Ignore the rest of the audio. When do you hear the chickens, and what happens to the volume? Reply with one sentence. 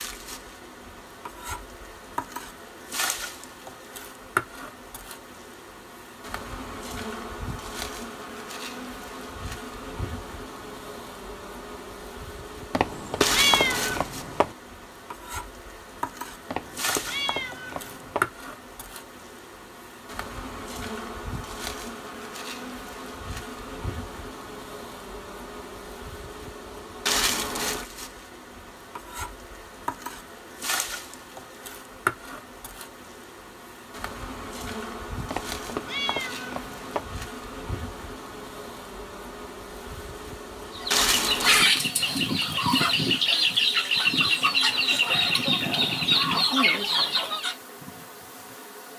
You can hear the chickens from 40.8 to 47.5 s, at a steady volume.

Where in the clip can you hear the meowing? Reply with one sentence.
The meowing can be heard from 12.7 to 14.6 s, from 16.5 to 18.3 s and from 35.3 to 37.1 s.